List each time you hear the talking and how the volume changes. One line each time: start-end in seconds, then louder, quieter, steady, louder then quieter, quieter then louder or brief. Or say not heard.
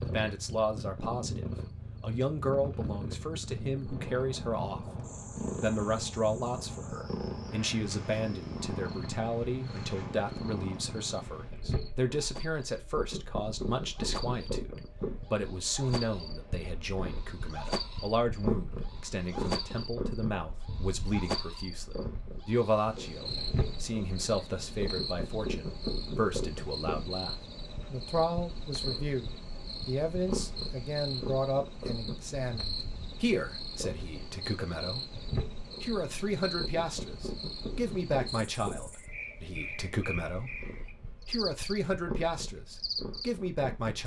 0.0-44.0 steady.